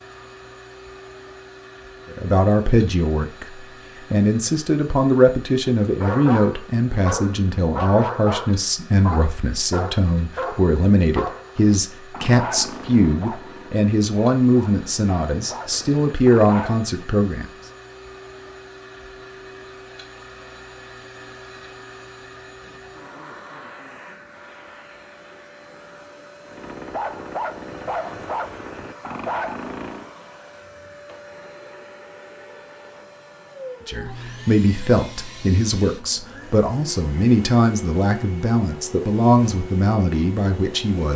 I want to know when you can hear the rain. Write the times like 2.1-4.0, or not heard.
not heard.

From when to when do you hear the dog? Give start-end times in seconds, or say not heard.
6.0-16.9, 26.4-30.1.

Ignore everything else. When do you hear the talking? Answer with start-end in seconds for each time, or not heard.
2.1-17.4, 33.9-41.1.